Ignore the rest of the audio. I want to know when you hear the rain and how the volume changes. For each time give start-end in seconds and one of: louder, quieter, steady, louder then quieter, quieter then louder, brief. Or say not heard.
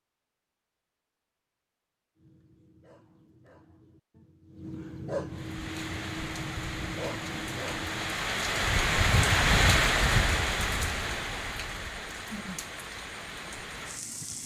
5.2-14.4 louder then quieter.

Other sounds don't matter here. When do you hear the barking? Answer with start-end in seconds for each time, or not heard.
2.1-8.3.